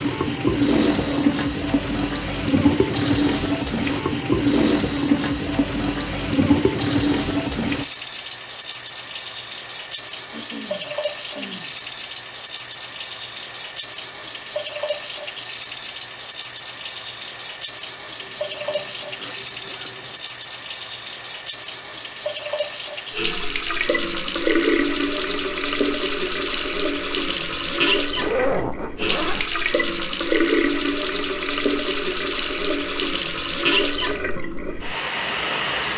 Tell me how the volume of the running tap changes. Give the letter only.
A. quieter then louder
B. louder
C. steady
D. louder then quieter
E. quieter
C.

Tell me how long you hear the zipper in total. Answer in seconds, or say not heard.
4 s.